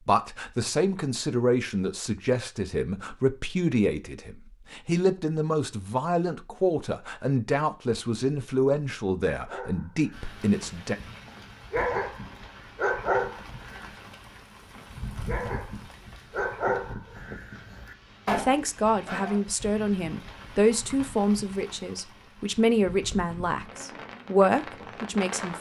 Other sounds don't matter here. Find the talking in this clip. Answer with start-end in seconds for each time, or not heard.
0.1-10.9, 18.4-25.5.